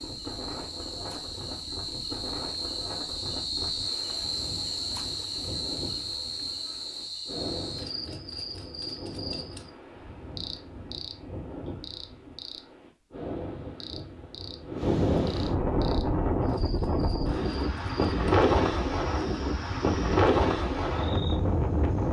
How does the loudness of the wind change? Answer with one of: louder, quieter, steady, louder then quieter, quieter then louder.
louder.